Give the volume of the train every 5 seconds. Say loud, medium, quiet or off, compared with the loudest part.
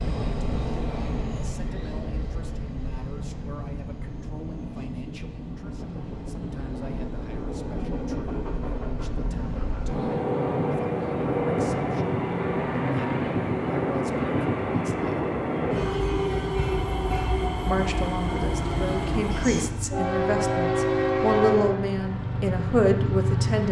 medium, medium, loud, loud, loud.